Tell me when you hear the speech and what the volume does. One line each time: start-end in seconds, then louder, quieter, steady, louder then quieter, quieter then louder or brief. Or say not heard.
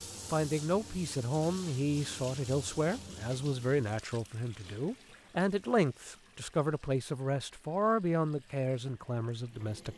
0.3-9.9 steady.